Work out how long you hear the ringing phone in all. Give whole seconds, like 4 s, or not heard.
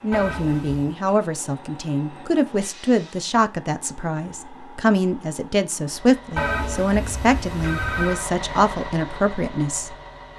3 s.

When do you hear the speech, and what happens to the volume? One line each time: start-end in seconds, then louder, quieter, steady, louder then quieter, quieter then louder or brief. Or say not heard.
0.0-9.9 steady.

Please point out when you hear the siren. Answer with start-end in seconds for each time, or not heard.
not heard.